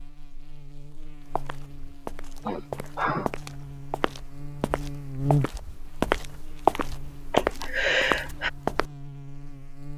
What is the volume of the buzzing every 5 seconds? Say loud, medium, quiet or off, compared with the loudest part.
medium, loud.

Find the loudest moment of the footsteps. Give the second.
7 s.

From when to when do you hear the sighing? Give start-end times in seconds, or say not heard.
2.5-3.3, 7.3-8.5.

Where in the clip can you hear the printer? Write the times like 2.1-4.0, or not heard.
not heard.